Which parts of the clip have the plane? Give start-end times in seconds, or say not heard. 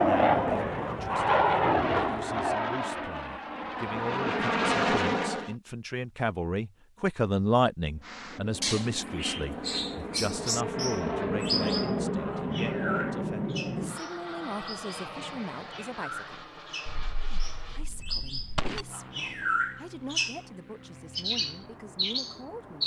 0.0-5.5, 8.0-22.8.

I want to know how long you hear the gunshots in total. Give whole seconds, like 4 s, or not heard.
2 s.